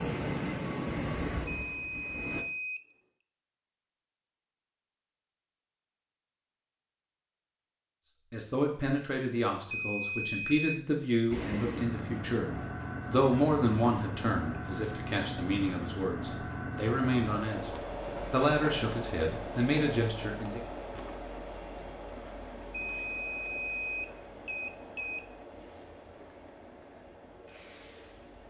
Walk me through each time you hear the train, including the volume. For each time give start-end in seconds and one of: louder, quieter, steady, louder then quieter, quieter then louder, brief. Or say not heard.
0.0-2.5 brief
11.3-28.4 quieter.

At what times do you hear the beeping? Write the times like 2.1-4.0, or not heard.
1.4-2.8, 9.7-10.8, 22.7-25.2.